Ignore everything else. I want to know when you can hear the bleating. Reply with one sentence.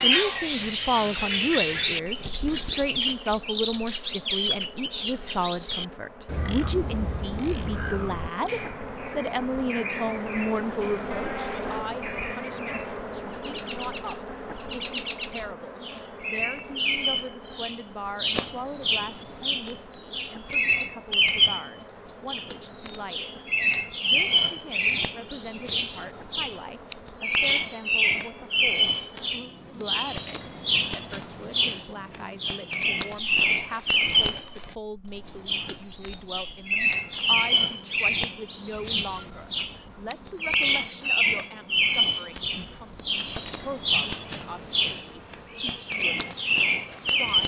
The bleating can be heard from 11.1 to 12.3 s.